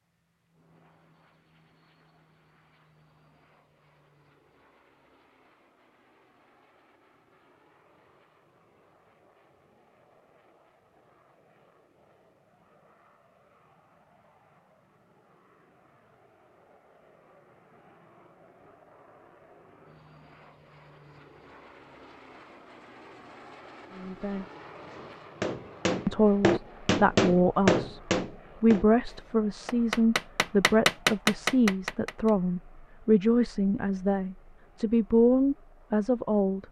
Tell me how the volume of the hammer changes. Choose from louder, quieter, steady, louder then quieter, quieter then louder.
quieter then louder.